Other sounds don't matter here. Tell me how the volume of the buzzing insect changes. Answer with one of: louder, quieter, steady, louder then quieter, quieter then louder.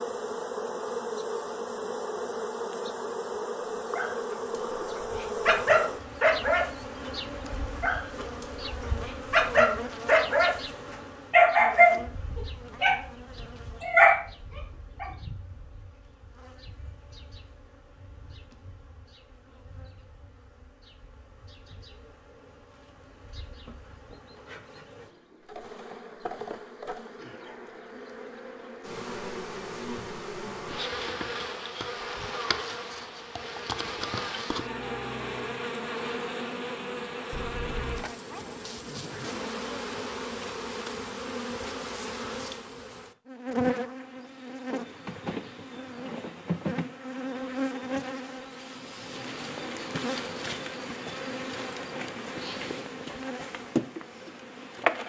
quieter then louder.